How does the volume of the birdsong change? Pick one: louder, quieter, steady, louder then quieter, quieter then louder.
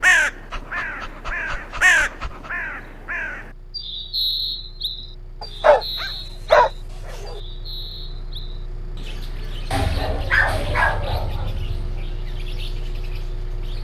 quieter.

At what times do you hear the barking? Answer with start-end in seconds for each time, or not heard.
0.5-2.5, 5.4-7.4, 9.7-12.0.